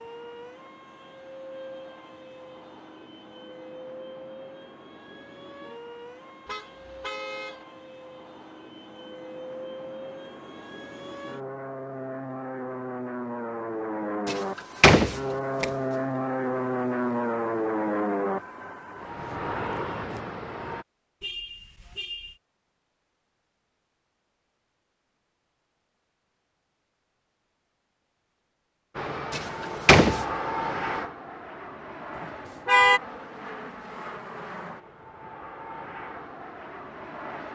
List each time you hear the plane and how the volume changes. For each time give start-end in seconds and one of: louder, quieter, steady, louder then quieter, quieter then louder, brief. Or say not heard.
0.0-20.9 louder
28.9-37.5 quieter.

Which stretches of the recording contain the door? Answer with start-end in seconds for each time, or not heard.
14.2-15.7, 29.3-30.2.